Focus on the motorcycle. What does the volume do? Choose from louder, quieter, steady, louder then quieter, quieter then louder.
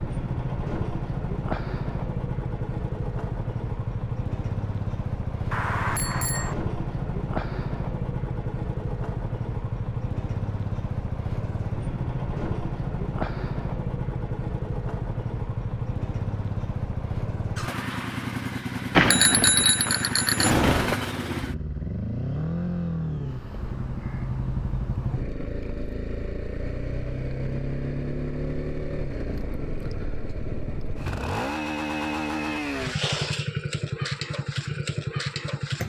steady.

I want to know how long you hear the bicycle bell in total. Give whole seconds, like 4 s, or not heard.
3 s.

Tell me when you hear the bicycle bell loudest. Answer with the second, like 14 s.
19 s.